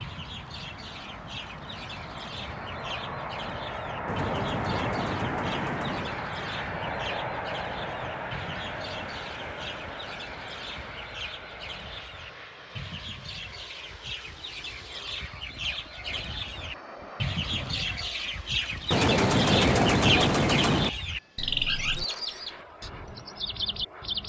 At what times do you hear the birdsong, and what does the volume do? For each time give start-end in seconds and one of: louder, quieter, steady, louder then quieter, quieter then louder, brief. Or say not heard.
0.0-24.2 louder.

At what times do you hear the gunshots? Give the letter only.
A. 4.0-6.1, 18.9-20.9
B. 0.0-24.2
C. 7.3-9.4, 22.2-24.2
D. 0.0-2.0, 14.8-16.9
A.